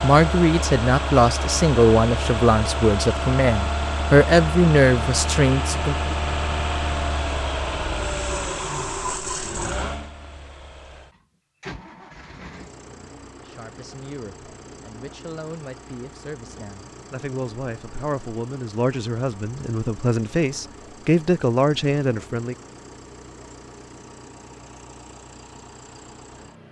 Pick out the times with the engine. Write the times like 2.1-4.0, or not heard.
0.0-26.6.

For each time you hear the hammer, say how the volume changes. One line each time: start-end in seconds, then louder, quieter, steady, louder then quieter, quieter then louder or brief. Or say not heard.
not heard.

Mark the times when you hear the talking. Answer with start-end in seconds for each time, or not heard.
0.0-6.2, 13.4-22.6.